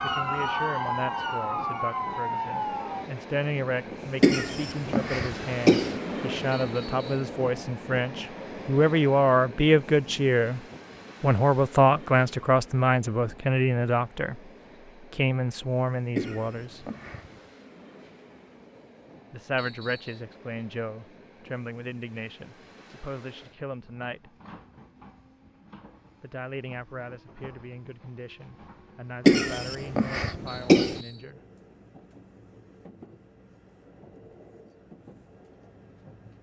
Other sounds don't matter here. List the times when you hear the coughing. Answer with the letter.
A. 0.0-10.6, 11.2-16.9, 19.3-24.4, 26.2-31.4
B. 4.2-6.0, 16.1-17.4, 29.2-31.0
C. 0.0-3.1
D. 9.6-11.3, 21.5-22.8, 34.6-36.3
B.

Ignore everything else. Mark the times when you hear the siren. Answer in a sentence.
The siren can be heard from 0.0 to 3.1 s.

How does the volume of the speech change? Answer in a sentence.
The loudness of the speech goes up, then down.